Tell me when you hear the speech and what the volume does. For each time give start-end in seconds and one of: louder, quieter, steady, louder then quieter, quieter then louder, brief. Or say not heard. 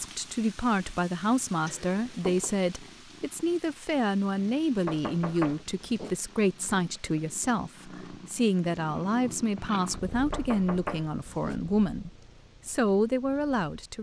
0.0-13.9 steady.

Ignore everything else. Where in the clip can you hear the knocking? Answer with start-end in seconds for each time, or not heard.
1.6-2.5, 4.8-6.2, 10.3-11.6.